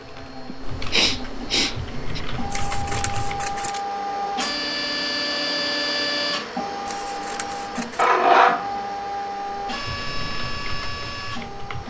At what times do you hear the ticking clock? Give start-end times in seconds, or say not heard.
not heard.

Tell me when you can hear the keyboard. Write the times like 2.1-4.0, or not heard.
0.0-3.6, 9.6-11.8.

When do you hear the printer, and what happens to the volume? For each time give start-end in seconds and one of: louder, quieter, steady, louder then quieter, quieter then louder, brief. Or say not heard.
0.0-11.8 louder then quieter.